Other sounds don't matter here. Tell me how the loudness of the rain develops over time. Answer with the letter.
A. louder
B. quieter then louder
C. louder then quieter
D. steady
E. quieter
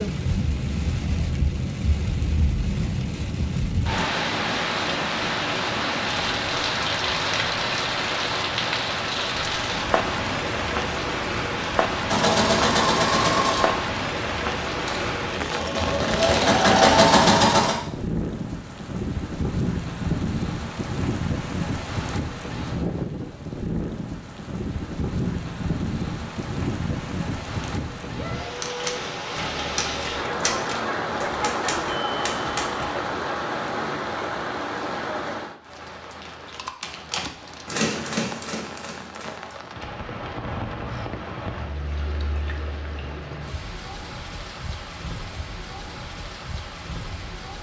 E.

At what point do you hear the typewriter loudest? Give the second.
38 s.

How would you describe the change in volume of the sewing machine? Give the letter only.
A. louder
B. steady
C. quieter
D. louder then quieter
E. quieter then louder
E.